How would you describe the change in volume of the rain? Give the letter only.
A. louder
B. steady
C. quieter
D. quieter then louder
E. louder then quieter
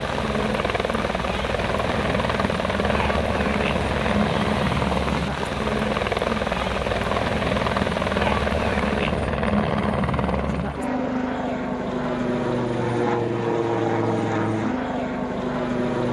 B.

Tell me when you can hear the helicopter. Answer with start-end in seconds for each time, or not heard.
0.0-16.0.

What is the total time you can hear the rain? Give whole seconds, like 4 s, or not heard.
9 s.